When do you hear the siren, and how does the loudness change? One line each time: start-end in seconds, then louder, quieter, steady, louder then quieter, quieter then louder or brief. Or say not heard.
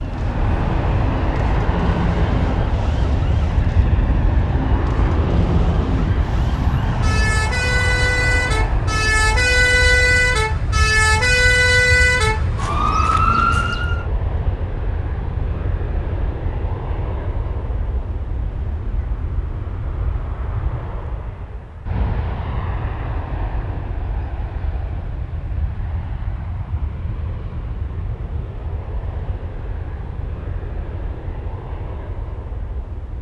0.0-14.1 louder.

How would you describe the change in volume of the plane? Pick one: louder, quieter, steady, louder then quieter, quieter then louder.
quieter.